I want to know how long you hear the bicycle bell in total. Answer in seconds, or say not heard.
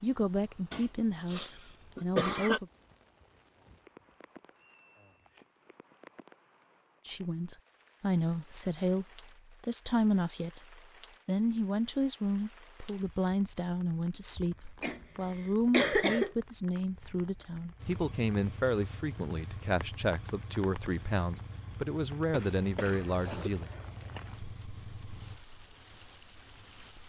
2 s.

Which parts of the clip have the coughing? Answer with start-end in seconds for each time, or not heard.
0.7-2.6, 14.8-16.3, 22.3-23.6.